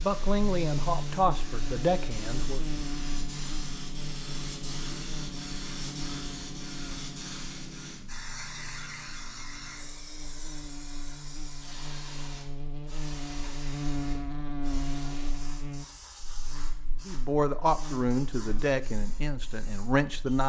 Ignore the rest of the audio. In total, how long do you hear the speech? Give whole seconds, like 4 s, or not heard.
6 s.